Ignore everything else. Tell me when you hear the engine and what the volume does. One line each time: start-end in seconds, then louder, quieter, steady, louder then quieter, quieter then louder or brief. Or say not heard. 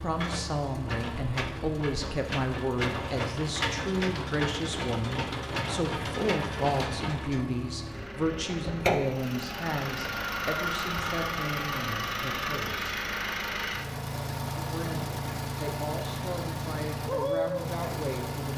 0.0-18.5 steady.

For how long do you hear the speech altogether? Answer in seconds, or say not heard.
17 s.